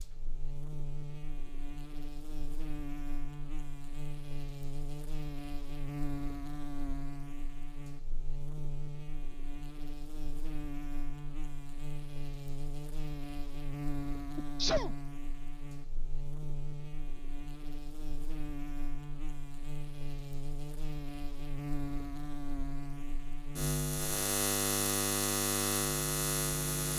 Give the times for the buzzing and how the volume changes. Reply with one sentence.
The buzzing can be heard from 0.0 to 26.9 s, getting louder.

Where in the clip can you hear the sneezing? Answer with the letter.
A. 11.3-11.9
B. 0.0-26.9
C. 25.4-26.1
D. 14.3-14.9
D.